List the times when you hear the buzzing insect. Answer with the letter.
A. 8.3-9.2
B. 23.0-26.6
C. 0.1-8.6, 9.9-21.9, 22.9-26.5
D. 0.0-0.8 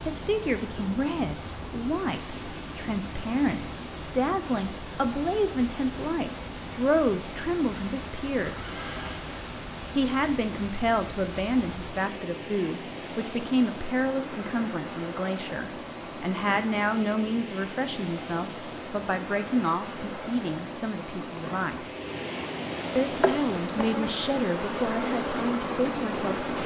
B.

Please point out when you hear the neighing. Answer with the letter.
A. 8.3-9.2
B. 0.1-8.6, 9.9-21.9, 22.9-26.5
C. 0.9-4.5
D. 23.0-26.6
A.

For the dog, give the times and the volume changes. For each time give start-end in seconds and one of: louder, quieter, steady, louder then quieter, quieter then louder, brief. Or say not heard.
not heard.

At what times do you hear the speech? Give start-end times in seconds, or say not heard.
0.1-8.6, 9.9-21.9, 22.9-26.5.